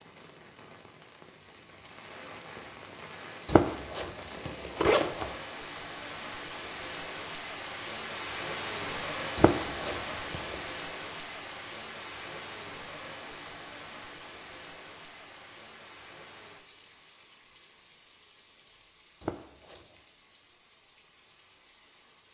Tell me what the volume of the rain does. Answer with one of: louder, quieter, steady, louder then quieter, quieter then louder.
louder then quieter.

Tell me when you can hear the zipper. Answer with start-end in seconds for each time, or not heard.
3.5-5.3, 9.3-10.6, 19.2-19.9.